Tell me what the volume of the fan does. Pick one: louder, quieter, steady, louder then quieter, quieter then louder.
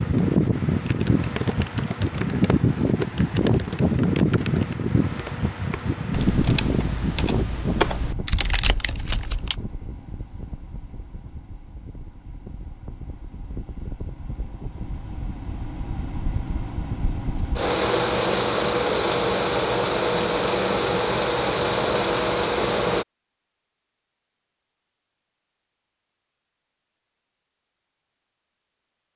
quieter then louder.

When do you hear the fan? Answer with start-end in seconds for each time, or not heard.
0.0-23.1.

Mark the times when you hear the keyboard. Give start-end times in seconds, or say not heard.
0.0-9.6.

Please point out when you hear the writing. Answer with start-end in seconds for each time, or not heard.
not heard.